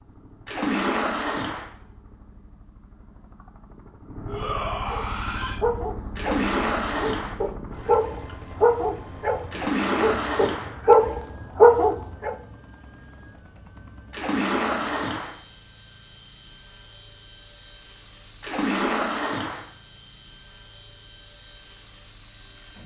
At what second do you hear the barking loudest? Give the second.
12 s.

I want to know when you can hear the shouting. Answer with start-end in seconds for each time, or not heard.
4.2-5.7.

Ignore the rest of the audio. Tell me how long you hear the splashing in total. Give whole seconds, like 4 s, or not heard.
6 s.